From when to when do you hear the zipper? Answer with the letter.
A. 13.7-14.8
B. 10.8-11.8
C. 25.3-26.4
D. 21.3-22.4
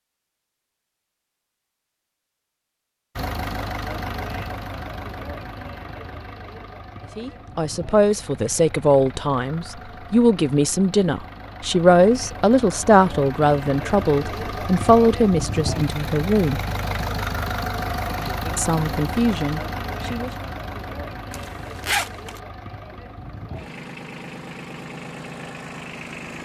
D.